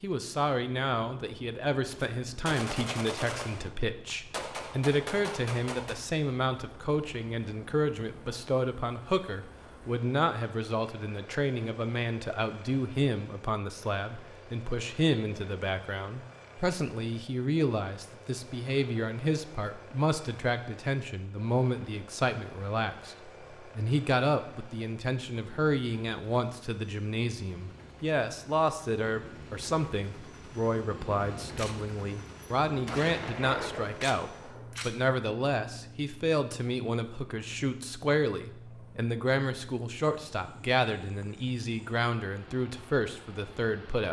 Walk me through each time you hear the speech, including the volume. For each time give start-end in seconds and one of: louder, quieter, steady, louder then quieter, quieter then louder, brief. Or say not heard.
0.0-44.0 steady.